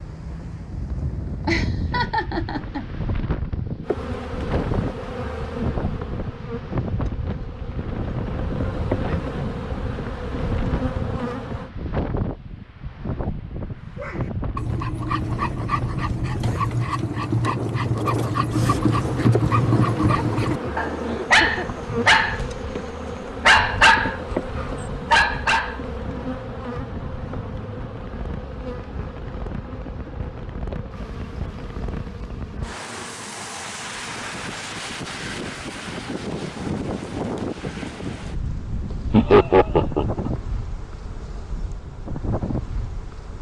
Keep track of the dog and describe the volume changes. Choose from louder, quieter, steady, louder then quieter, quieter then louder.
louder.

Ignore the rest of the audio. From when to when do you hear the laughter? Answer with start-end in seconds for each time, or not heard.
1.4-2.9, 20.1-21.8, 39.1-40.2.